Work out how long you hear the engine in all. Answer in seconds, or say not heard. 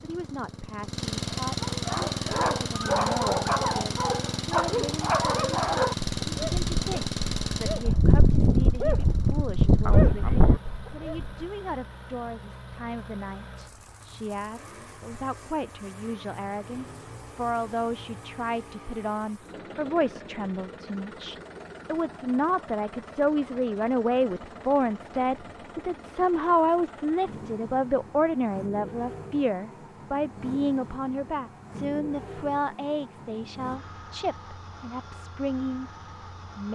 37 s.